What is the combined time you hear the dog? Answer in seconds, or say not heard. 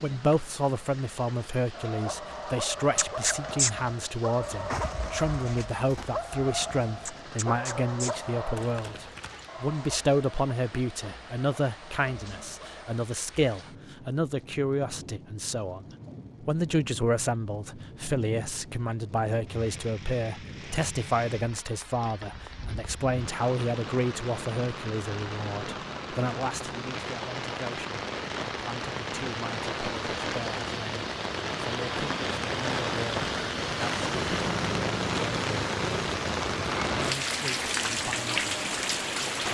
11 s.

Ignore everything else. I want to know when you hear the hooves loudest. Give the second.
4 s.